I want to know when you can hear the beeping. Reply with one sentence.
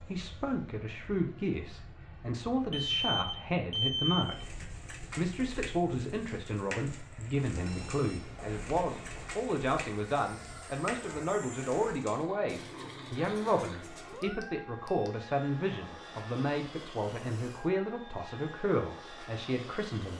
The beeping can be heard from 2.7 to 4.5 s, from 7.6 to 9.3 s and from 14.2 to 15.1 s.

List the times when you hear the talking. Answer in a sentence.
The talking can be heard from 0.0 to 20.1 s.